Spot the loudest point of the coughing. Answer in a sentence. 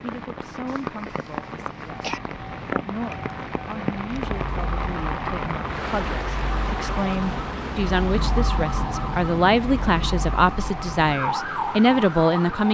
The loudest moment of the coughing is at 2 seconds.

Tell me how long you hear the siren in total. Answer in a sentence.
You can hear the siren for 8 seconds altogether.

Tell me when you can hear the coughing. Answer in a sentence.
The coughing can be heard from 0.7 to 2.2 s.